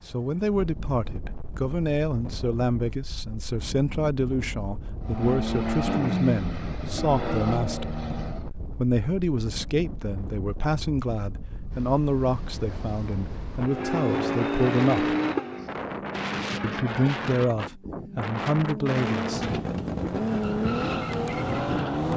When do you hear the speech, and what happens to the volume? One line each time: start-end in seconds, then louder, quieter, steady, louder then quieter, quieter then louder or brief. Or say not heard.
0.1-15.2 steady
16.6-19.4 brief.